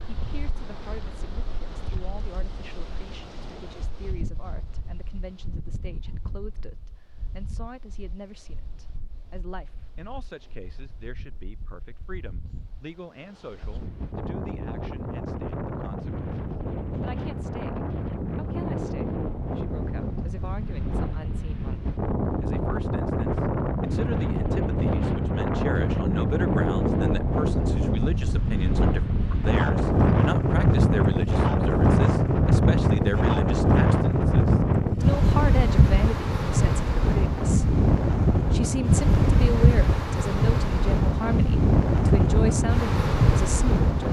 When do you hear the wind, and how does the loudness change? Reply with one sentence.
You can hear the wind from 0.0 to 44.0 s, getting louder.